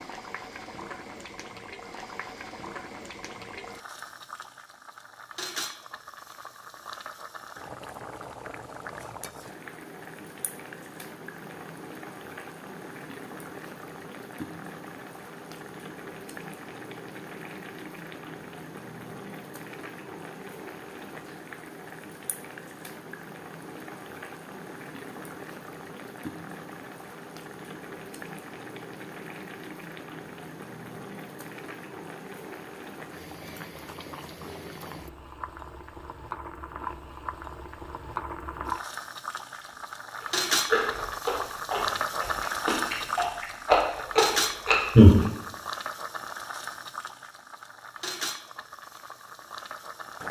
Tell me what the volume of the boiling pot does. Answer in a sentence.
The loudness of the boiling pot goes up.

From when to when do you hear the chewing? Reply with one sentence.
The chewing can be heard from 39.6 to 45.2 s.